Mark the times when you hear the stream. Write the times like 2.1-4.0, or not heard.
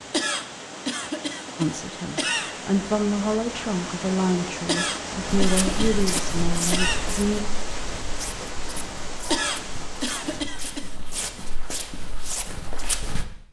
0.0-10.4.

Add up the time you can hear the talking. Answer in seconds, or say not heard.
6 s.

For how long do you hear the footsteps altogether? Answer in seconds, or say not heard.
8 s.